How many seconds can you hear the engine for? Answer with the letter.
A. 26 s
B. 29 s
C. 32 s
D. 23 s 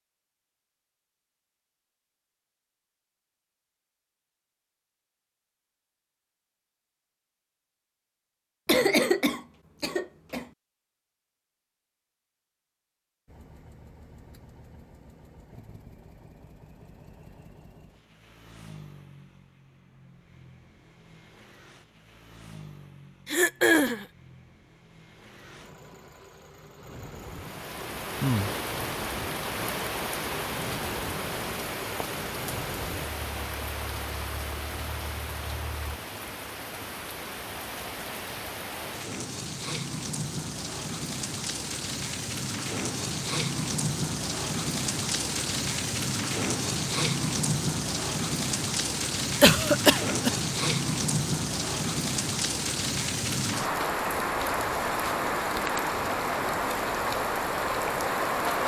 D.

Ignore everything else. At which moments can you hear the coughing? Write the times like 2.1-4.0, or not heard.
8.7-10.4, 23.2-24.1, 49.4-50.5.